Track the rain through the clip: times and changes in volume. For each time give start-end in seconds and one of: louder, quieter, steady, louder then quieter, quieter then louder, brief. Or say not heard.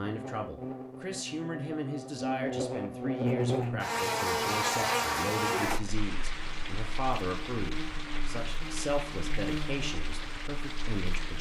5.7-11.3 steady.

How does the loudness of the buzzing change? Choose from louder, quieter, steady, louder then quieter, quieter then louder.
louder then quieter.